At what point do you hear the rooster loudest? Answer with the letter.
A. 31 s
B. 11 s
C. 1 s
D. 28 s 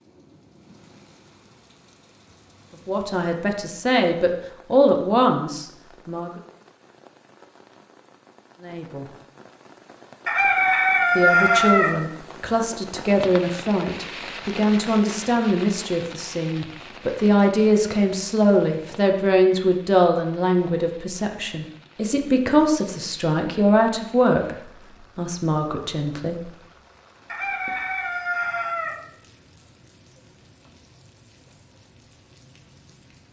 B.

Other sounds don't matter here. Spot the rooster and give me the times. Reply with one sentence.
The rooster can be heard from 10.2 to 11.9 s and from 27.2 to 28.9 s.